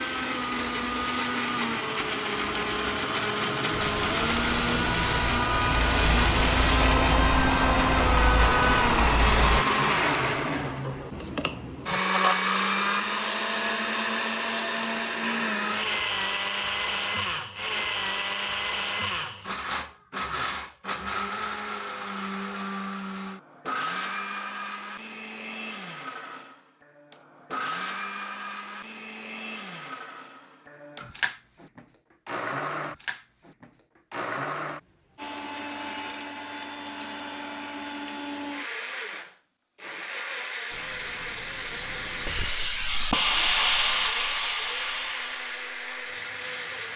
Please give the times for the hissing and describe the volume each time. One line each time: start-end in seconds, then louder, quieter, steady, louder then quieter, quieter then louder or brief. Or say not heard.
0.0-9.7 louder
40.7-46.9 louder then quieter.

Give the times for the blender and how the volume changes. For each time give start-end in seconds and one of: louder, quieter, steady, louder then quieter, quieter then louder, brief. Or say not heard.
0.0-46.9 quieter.